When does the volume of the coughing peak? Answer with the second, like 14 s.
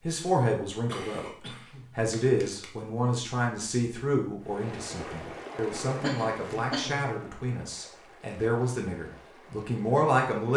6 s.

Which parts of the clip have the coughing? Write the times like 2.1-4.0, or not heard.
0.8-2.7, 5.5-7.3.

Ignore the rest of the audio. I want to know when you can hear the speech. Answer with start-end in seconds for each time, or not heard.
0.1-10.5.